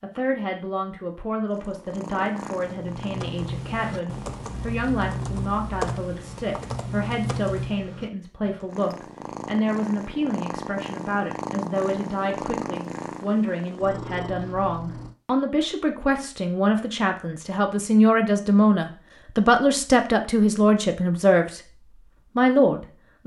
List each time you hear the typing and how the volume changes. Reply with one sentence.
You can hear the typing from 2.7 to 8.8 s, at a steady volume.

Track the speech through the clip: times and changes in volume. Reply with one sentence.
The speech can be heard from 0.0 to 21.6 s, getting louder; and briefly from 22.4 to 23.2 s.